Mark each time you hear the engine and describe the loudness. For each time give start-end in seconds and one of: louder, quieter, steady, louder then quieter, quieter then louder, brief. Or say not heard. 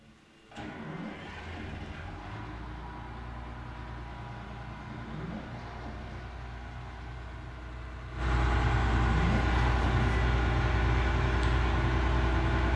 0.0-12.7 louder.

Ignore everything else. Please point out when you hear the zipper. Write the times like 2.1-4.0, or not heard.
0.6-1.9, 4.8-6.2, 8.8-10.2.